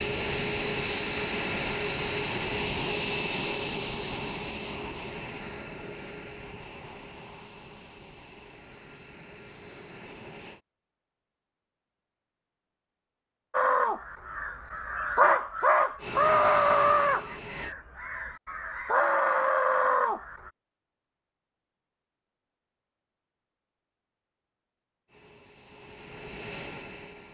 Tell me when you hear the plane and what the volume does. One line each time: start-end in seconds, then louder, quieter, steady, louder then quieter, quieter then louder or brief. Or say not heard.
0.0-10.6 quieter
15.9-17.8 brief
25.1-27.2 brief.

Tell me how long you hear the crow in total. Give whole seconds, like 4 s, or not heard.
7 s.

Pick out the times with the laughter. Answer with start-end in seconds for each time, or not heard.
not heard.